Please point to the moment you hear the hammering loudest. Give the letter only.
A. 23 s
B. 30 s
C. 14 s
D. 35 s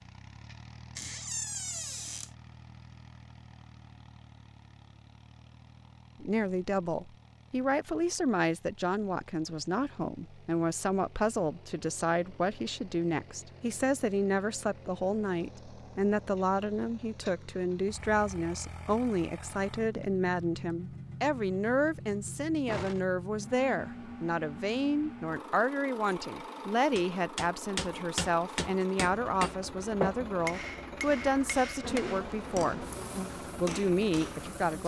B.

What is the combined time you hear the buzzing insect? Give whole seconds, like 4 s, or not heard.
3 s.